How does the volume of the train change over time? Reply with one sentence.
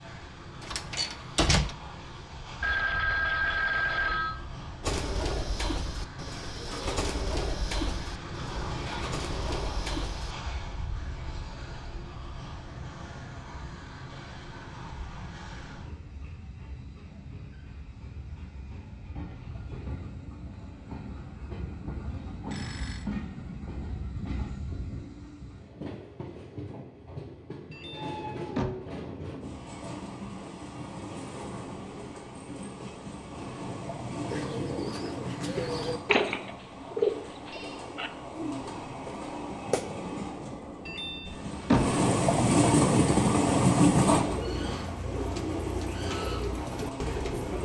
The volume of the train goes up.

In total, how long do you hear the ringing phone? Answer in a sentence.
You can hear the ringing phone for 4 seconds altogether.